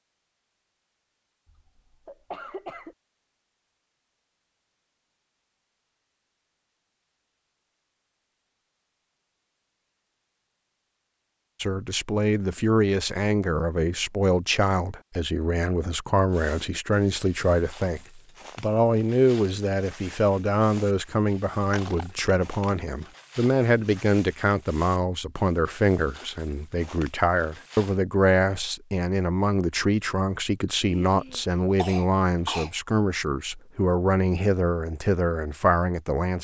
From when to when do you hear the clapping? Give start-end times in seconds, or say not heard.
not heard.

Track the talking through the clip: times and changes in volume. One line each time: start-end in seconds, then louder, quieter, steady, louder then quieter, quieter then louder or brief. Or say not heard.
11.6-36.3 steady.